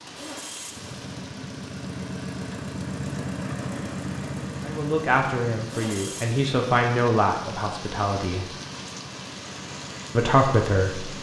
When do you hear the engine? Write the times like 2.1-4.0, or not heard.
0.0-11.1.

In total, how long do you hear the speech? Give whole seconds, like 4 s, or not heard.
5 s.